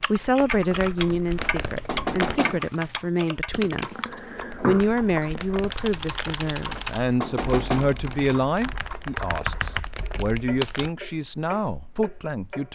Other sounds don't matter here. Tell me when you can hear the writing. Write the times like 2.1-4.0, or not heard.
not heard.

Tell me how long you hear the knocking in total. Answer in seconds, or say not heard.
3 s.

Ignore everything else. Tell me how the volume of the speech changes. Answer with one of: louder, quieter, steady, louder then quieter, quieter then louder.
steady.